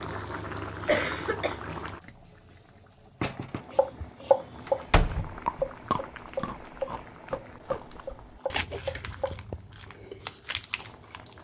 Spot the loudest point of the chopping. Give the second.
4 s.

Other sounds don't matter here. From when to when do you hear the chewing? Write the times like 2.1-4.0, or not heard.
5.2-11.3.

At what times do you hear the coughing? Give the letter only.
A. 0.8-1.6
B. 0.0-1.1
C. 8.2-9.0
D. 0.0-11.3
A.